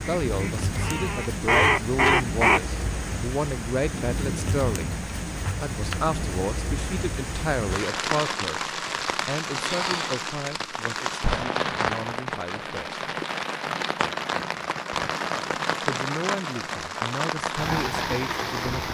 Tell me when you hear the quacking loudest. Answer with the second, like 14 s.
2 s.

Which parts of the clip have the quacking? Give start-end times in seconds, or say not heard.
0.0-2.6.